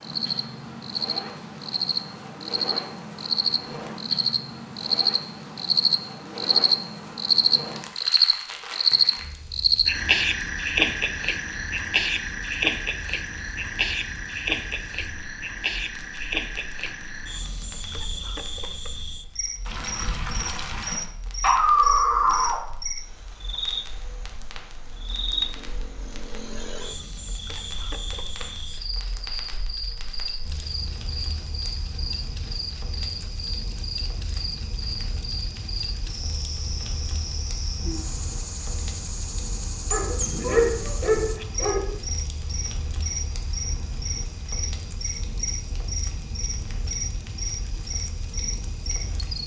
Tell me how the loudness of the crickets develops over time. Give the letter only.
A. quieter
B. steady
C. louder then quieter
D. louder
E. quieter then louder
A.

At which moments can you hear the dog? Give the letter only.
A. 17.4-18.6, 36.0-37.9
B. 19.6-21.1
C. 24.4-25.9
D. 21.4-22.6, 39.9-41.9
D.